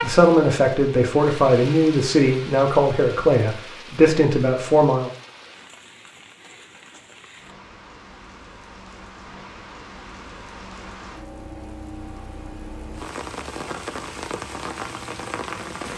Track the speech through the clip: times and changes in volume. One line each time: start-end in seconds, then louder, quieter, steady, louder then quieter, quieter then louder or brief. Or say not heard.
0.0-5.1 steady.